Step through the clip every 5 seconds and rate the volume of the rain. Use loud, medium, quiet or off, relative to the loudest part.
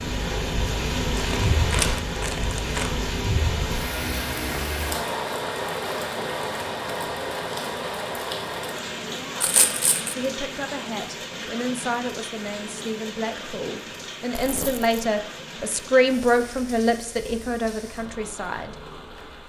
loud, loud, medium, quiet.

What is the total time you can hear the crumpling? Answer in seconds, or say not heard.
3 s.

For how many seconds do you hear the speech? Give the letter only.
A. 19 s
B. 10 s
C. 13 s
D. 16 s
B.